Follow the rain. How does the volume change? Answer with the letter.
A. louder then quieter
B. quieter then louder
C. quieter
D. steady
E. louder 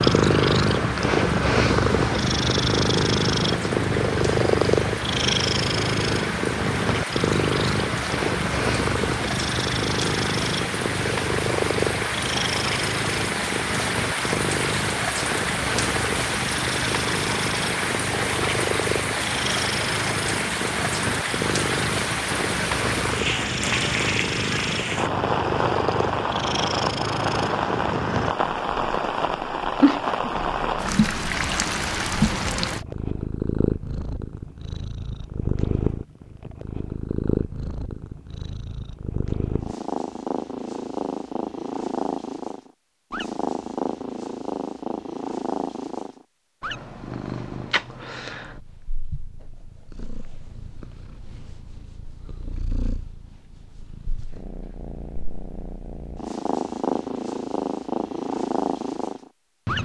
E.